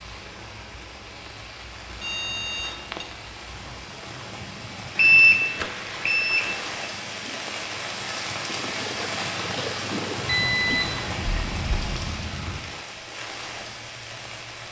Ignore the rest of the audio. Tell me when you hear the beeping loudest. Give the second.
5 s.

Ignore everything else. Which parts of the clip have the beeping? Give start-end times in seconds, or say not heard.
2.0-3.0, 5.0-6.7, 10.2-12.7.